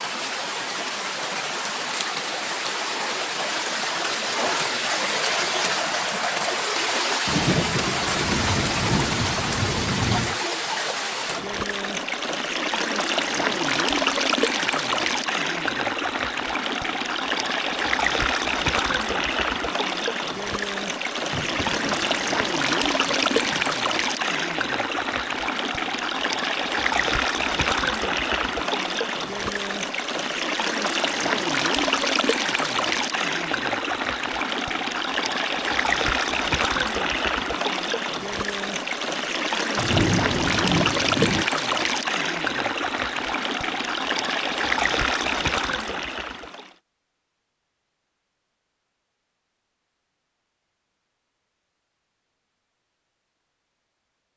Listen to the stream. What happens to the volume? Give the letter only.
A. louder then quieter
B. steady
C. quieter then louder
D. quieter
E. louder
B.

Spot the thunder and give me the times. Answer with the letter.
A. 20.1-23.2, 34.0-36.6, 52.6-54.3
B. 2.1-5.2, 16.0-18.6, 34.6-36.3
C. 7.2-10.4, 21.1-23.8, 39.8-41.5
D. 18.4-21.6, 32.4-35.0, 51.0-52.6
C.